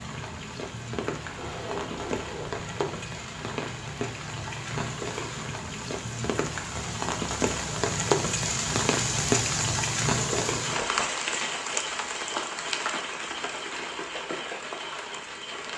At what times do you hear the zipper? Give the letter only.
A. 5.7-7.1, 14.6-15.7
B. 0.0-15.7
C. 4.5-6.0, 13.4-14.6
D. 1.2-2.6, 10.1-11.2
D.